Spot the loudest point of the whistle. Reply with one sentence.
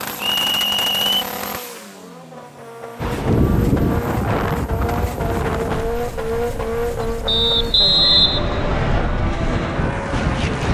The loudest moment of the whistle is at 8 seconds.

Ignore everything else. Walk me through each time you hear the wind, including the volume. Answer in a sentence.
The wind can be heard from 3.0 to 10.6 s, getting quieter then louder.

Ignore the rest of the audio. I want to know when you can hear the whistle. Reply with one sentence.
You can hear the whistle from 0.1 to 1.2 s and from 7.2 to 9.1 s.